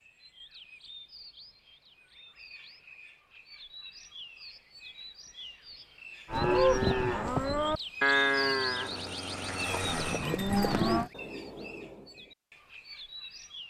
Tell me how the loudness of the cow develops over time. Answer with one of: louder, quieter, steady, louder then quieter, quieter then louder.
quieter then louder.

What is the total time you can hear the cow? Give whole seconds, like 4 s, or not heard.
5 s.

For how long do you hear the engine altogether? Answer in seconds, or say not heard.
2 s.